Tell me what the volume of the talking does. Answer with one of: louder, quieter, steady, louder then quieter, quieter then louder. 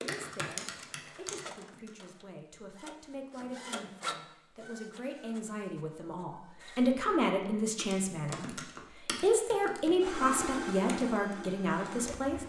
louder.